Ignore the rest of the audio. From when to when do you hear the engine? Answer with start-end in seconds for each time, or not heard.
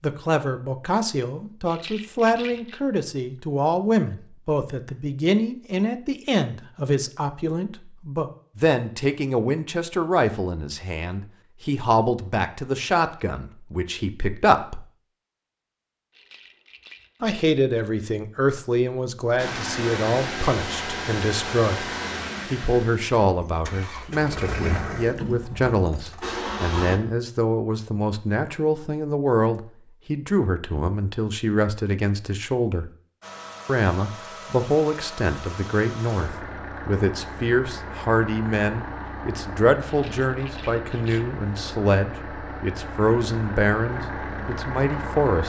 19.4-27.0, 33.2-45.4.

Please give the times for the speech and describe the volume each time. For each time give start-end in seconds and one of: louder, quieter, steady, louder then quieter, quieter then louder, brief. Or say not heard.
0.0-14.8 steady
17.2-32.9 steady
33.6-45.4 steady.